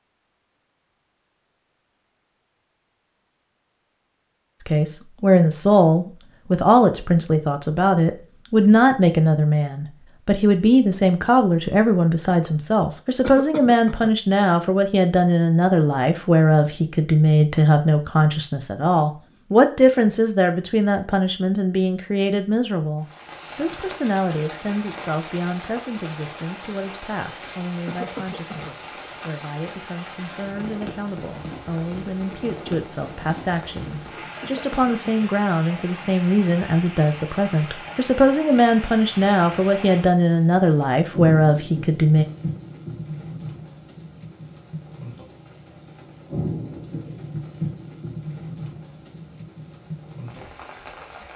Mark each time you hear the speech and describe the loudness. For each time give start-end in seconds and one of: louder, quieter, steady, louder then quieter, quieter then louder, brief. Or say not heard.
4.6-42.2 quieter then louder.